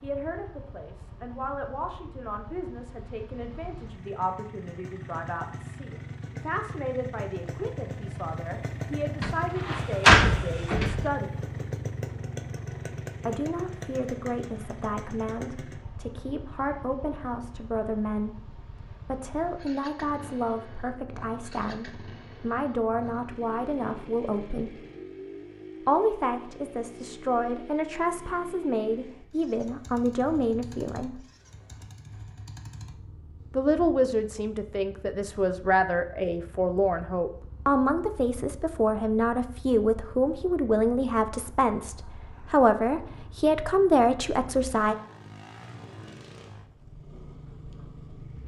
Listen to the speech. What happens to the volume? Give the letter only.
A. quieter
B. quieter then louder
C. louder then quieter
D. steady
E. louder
E.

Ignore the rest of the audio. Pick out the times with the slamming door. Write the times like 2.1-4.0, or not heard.
9.2-11.1.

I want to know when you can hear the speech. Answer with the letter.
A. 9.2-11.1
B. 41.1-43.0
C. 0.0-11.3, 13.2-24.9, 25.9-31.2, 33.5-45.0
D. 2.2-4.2
C.